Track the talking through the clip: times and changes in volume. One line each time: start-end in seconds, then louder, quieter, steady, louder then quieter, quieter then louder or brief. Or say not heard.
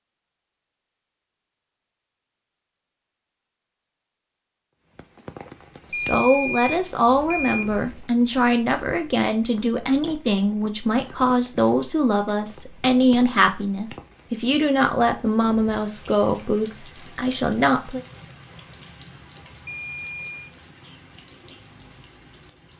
6.0-18.0 steady.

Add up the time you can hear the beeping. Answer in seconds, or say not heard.
3 s.